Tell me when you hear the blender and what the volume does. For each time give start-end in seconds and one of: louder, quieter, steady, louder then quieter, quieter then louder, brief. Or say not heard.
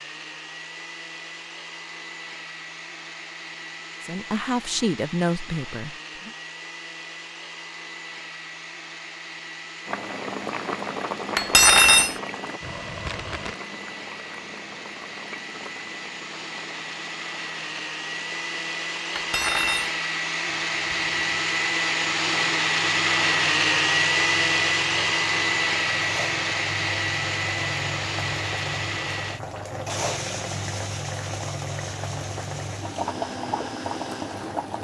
0.0-34.8 louder then quieter.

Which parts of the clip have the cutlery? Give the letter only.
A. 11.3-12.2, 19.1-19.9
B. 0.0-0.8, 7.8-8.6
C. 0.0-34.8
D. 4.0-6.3
A.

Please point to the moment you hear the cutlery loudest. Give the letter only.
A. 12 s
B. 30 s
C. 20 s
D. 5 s
A.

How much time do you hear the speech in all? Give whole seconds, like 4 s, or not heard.
2 s.